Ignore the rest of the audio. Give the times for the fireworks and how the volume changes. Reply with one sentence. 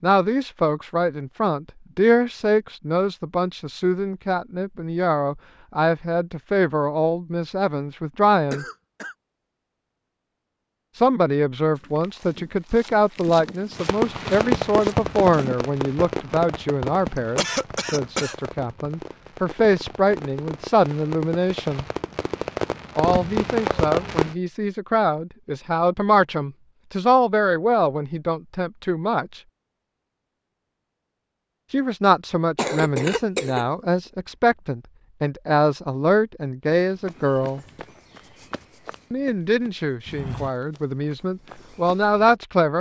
The fireworks can be heard from 13.7 to 24.4 s, getting quieter then louder.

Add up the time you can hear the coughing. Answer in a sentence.
You can hear the coughing for 3 seconds altogether.